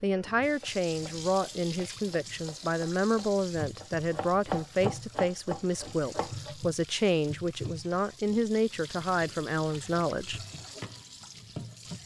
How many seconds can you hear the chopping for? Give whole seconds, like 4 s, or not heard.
6 s.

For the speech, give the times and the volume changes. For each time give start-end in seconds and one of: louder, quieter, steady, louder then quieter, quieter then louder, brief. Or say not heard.
0.0-10.4 steady.